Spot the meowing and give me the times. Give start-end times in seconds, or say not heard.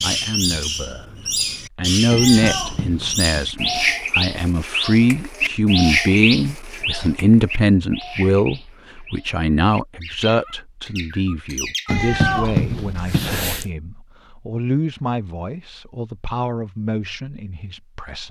2.1-3.2, 11.8-13.7.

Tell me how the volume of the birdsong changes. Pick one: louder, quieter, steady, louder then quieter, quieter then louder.
quieter.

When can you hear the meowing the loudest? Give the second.
12 s.